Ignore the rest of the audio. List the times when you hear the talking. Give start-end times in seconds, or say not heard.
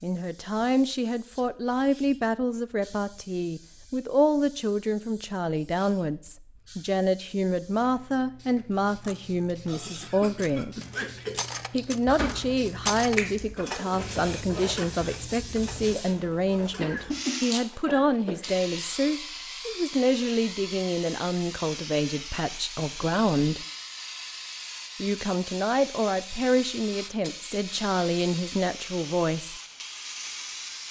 0.0-10.8, 11.7-23.6, 25.0-29.6.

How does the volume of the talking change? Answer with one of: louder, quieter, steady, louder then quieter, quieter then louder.
steady.